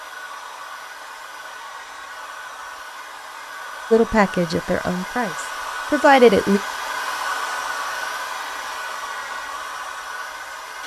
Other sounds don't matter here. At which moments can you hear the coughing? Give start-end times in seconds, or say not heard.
not heard.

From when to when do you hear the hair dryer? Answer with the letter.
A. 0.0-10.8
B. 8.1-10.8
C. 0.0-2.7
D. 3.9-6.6
A.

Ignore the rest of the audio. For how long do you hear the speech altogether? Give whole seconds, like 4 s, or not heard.
3 s.